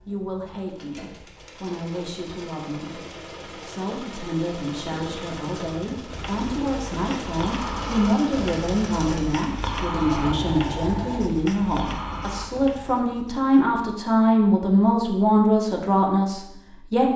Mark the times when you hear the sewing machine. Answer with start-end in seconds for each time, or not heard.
0.0-11.3.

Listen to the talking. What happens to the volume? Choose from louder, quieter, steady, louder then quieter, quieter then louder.
louder.